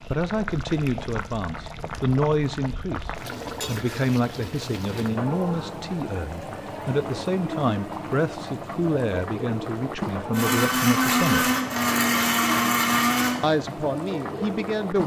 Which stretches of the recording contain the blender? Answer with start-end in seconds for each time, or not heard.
10.3-13.3.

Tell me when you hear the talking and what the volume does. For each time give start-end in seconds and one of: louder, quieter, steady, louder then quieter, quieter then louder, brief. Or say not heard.
0.1-11.5 steady
13.4-15.0 brief.